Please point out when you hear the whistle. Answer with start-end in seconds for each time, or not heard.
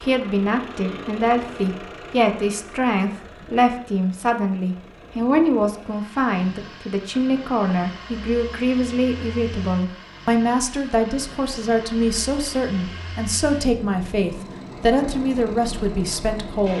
not heard.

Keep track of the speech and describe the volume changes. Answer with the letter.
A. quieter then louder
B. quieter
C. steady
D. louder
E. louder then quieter
C.